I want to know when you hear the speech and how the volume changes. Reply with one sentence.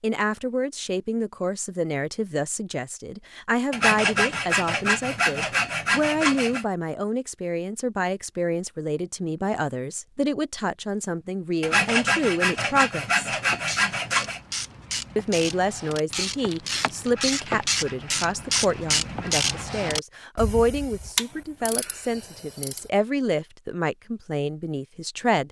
You can hear the speech from 0.0 to 13.3 s, at a steady volume; and from 15.2 to 25.4 s, at a steady volume.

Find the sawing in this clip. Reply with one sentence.
The sawing can be heard from 3.7 to 6.7 s, from 11.6 to 14.4 s and from 17.1 to 19.8 s.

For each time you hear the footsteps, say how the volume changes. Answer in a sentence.
You can't hear the footsteps here.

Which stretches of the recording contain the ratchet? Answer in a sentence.
The ratchet can be heard from 13.4 to 22.9 s.